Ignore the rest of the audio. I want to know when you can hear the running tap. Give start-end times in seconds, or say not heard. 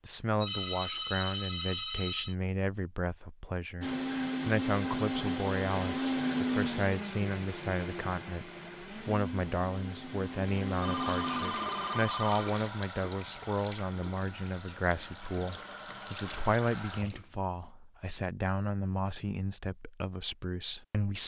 10.9-17.4.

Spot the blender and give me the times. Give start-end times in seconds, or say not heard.
3.8-12.1.